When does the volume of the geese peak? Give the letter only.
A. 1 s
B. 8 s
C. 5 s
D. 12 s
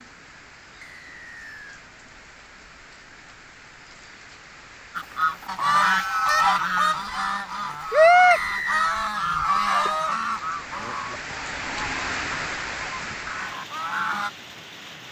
B.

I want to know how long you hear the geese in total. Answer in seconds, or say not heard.
9 s.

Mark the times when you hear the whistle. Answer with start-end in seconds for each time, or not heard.
0.8-1.9, 8.3-8.9.